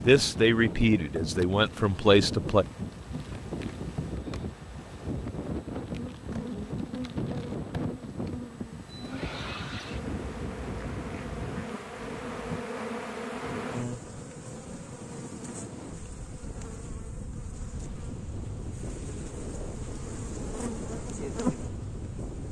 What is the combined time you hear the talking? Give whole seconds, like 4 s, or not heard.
3 s.